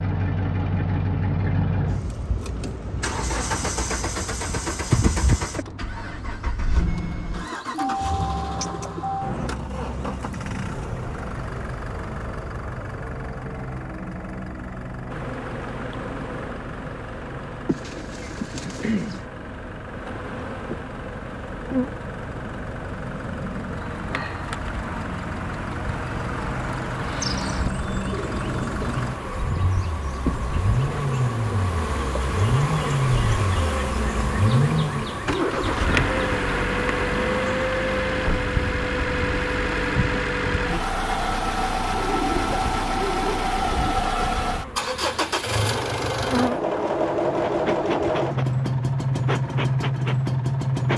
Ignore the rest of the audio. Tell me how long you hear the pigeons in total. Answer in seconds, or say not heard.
7 s.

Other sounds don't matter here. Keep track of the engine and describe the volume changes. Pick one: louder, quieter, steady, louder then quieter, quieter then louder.
quieter then louder.